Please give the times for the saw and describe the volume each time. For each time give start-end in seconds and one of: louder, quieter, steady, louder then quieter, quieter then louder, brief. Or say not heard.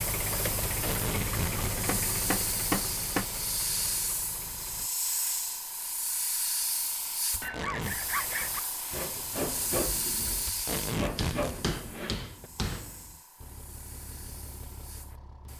7.4-12.5 steady.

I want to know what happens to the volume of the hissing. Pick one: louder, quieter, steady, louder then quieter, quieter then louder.
quieter.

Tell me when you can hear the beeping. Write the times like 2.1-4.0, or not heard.
not heard.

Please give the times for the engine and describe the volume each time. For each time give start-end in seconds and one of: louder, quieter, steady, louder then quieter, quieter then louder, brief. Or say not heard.
0.0-4.9 quieter
13.3-15.5 brief.